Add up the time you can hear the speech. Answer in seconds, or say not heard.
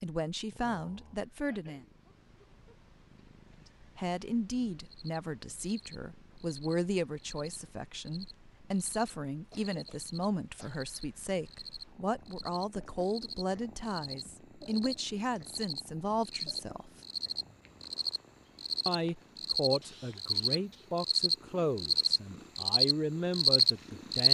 20 s.